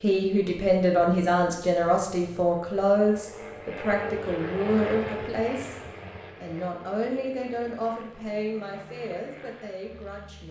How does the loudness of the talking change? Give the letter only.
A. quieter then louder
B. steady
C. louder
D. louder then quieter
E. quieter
E.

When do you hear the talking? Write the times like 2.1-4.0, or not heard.
0.0-5.8, 6.4-10.4.